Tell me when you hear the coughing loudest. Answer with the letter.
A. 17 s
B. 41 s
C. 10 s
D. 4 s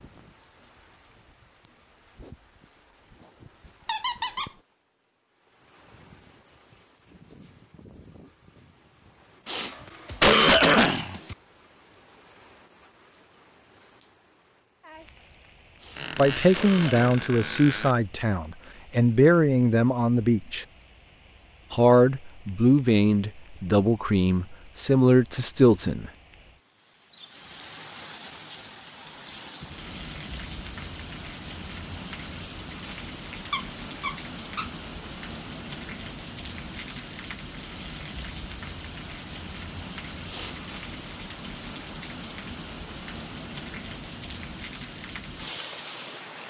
C.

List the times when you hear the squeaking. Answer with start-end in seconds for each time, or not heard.
3.9-4.5, 15.9-17.9, 33.3-34.7.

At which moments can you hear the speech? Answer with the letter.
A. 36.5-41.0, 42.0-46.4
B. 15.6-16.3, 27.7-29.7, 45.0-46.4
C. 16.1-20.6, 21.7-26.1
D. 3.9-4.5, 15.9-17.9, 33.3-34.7
C.